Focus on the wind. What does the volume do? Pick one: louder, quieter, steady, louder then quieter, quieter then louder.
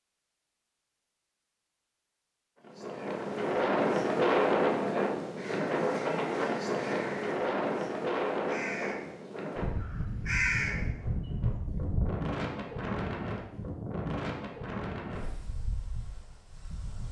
quieter.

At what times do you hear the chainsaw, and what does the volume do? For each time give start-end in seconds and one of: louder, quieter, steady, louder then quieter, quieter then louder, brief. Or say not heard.
not heard.